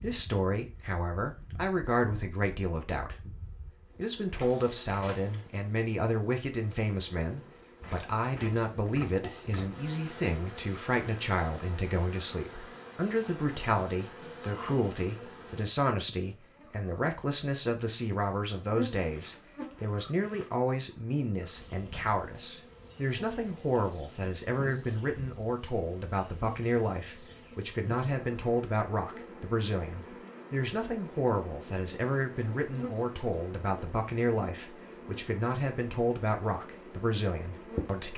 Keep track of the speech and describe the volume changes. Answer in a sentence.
The loudness of the speech stays about the same.